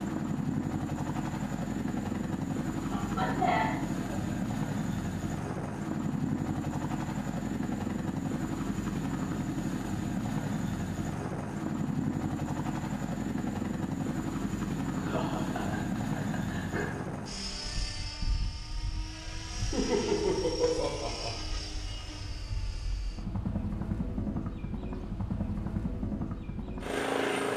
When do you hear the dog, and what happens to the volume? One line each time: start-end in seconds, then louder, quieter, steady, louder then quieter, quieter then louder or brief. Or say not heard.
not heard.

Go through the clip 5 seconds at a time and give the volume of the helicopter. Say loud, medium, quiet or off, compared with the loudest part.
loud, loud, loud, loud, medium, loud.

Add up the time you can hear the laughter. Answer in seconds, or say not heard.
5 s.